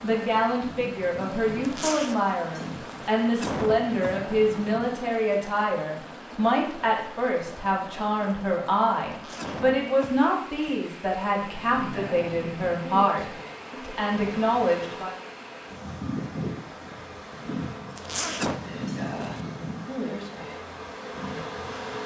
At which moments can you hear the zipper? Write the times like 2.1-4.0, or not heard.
1.6-3.1, 9.1-9.7, 17.9-19.4.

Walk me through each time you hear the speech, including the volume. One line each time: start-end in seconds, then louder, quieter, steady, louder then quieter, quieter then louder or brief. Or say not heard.
0.0-15.2 steady.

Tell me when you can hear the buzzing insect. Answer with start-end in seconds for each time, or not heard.
0.0-5.0, 11.4-22.0.